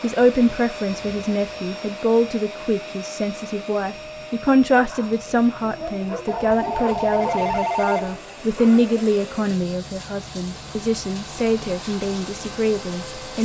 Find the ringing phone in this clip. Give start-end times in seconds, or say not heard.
6.2-8.2.